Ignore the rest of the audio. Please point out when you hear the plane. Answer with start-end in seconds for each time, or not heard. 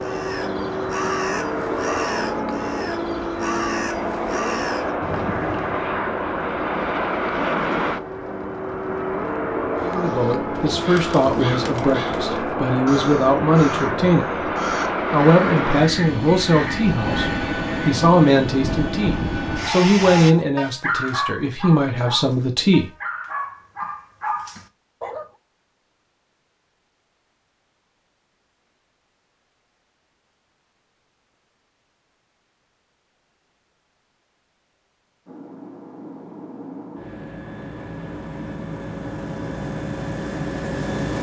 0.0-20.4, 35.2-41.1.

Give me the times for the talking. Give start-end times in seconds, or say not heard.
9.8-14.4, 15.1-22.9.